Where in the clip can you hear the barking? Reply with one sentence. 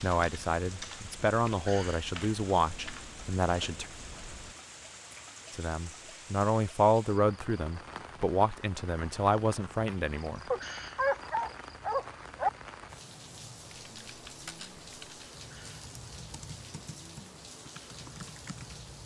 You can hear the barking from 10.5 to 12.5 s.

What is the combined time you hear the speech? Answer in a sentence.
You can hear the speech for 9 seconds altogether.